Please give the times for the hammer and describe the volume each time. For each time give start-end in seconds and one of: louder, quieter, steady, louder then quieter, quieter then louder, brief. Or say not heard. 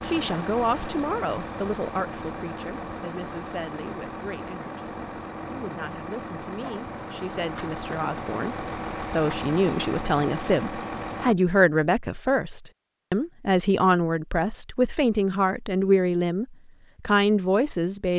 not heard.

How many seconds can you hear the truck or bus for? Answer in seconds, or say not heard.
11 s.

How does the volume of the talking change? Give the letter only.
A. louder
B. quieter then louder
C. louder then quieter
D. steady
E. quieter
B.